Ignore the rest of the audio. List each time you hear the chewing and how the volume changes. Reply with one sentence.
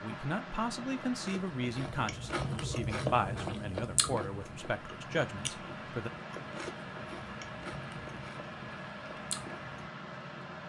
The chewing can be heard from 1.1 to 9.8 s, getting quieter.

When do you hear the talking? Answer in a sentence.
The talking can be heard from 0.0 to 6.1 s.